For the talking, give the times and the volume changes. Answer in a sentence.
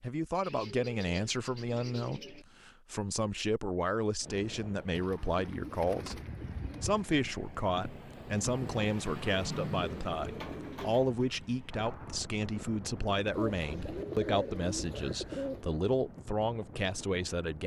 The talking can be heard from 0.0 to 6.2 s, at a steady volume; and from 6.8 to 17.6 s, at a steady volume.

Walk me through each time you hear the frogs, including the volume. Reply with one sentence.
The frogs can't be heard in this clip.